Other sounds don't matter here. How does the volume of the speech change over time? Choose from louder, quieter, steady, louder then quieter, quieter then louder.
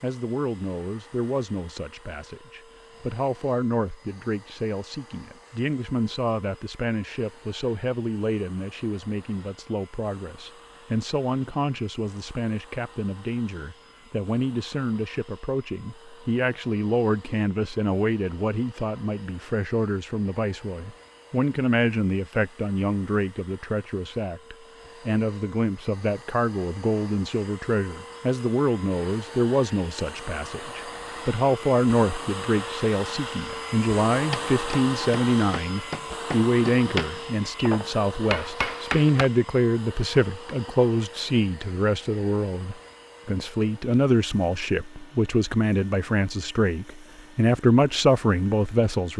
louder.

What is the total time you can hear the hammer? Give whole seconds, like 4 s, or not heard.
5 s.